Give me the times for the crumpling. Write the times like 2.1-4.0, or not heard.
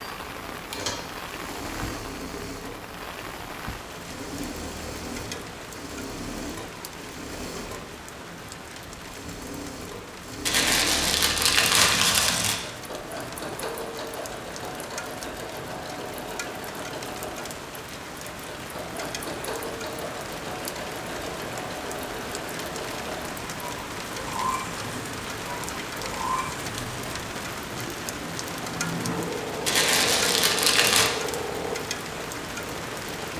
10.4-12.6, 29.6-31.1.